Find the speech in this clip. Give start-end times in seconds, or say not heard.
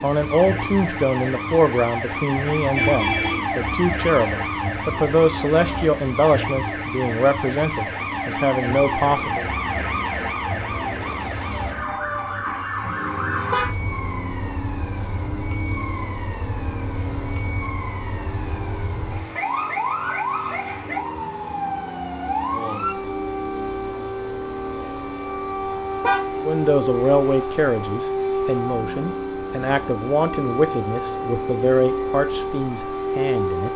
0.0-9.4, 26.4-33.7.